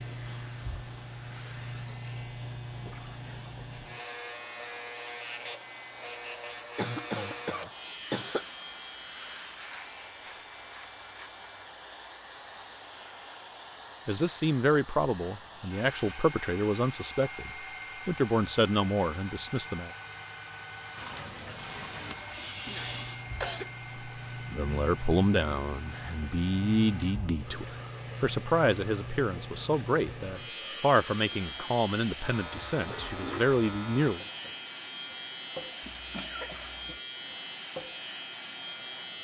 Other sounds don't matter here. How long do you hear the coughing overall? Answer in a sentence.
The coughing can be heard for 4 seconds in total.